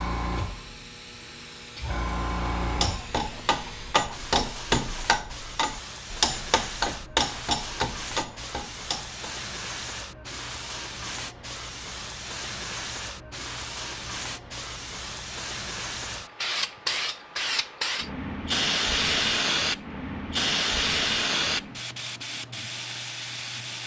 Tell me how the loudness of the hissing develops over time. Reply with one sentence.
The loudness of the hissing goes up.